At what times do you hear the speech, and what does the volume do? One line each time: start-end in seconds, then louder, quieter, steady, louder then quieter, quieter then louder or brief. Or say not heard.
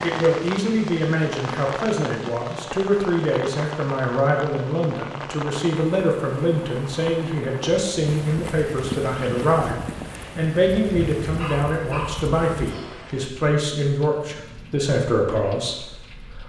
0.0-16.4 steady.